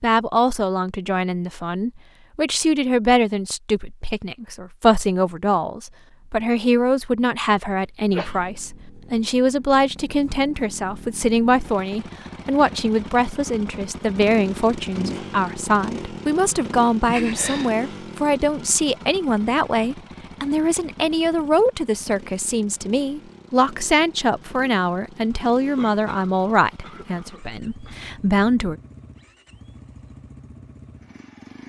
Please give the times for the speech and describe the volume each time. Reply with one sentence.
You can hear the speech from 0.0 to 28.8 s, at a steady volume.